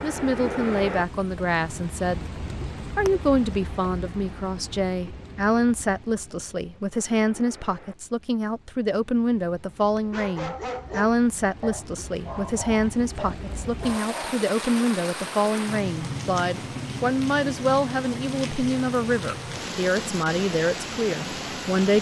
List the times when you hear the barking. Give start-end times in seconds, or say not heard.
10.1-14.4.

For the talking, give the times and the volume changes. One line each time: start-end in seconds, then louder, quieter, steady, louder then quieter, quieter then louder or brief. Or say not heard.
0.0-21.9 steady.